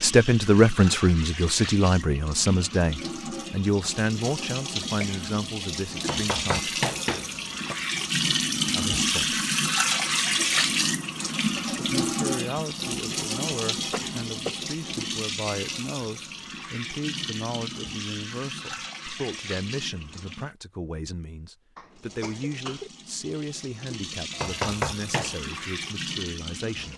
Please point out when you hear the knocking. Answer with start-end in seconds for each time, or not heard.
6.0-7.8, 24.3-25.4.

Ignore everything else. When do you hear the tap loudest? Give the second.
10 s.